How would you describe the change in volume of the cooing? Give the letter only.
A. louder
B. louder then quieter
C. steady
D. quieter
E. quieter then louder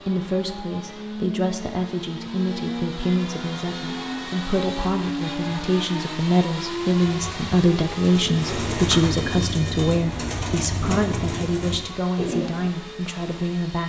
A.